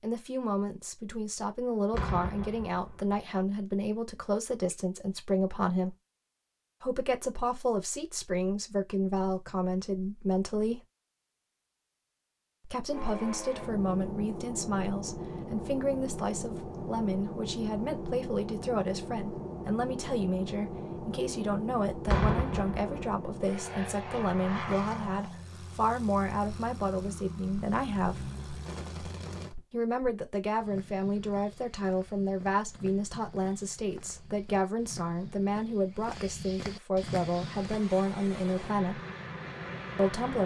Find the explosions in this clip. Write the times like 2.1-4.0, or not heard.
1.9-3.1, 22.1-23.3.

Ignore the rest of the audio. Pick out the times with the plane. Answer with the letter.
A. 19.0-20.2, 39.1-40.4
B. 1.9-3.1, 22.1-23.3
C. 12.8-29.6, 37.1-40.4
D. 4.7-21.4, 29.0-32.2
C.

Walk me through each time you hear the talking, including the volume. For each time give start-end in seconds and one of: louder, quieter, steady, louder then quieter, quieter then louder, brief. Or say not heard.
0.0-6.0 steady
6.8-10.8 steady
12.7-28.3 steady
29.7-39.0 steady
40.0-40.4 brief.